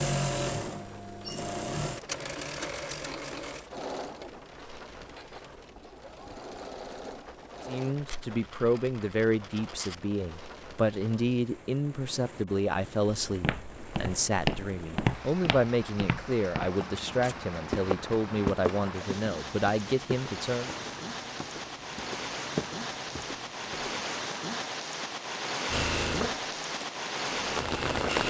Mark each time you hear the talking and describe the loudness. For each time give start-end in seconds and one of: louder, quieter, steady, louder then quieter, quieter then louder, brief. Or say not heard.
7.7-20.7 steady.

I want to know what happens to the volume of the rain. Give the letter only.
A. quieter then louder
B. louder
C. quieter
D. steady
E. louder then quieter
B.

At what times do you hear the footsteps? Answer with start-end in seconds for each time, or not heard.
13.2-24.1.